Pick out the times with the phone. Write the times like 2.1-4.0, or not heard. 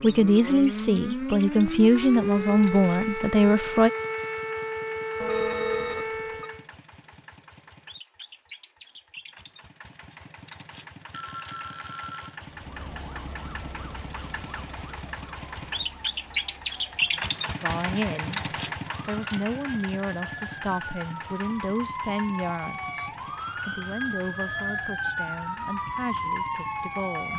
5.2-6.5, 11.1-12.4, 23.2-24.9.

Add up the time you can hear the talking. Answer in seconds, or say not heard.
13 s.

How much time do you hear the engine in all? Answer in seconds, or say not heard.
27 s.